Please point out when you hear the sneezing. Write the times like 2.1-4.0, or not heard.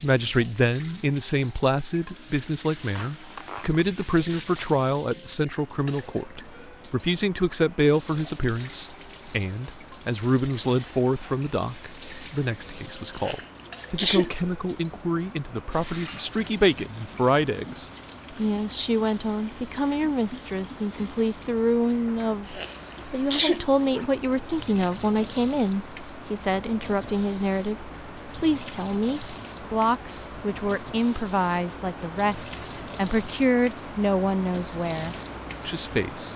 13.1-14.3, 22.4-23.6.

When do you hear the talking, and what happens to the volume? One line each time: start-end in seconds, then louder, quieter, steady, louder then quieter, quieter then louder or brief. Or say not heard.
0.0-36.3 steady.